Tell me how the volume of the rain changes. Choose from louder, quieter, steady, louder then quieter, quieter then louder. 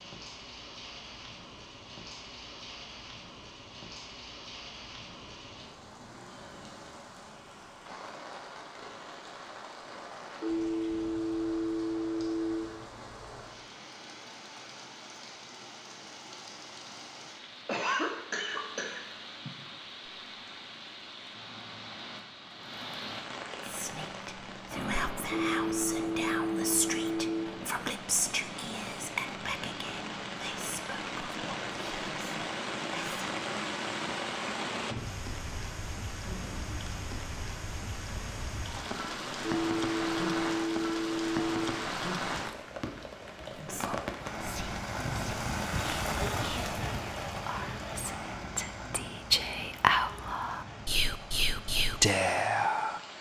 louder.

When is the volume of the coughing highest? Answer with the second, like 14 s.
18 s.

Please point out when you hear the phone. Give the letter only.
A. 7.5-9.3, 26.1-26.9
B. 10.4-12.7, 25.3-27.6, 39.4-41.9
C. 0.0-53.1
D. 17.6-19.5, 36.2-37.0
B.